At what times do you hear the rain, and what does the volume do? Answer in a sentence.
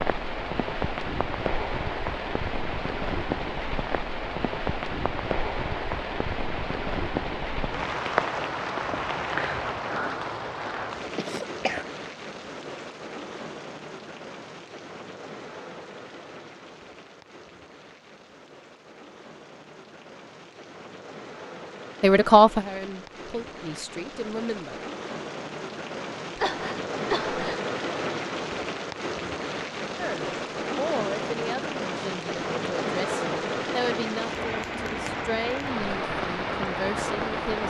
The rain can be heard from 0.0 to 37.6 s, getting quieter then louder.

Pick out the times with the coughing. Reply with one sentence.
You can hear the coughing from 11.2 to 11.8 s and from 26.4 to 27.6 s.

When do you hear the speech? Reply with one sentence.
The speech can be heard from 22.0 to 24.8 s and from 29.9 to 37.6 s.